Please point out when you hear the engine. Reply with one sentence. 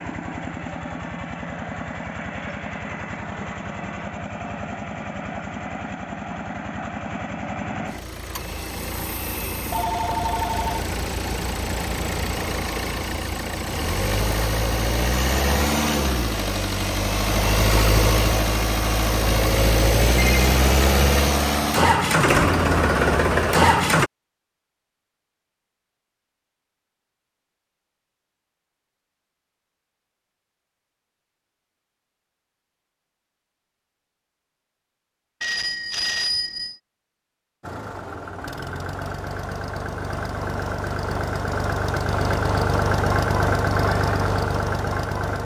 The engine can be heard from 0.0 to 24.1 s and from 37.6 to 45.3 s.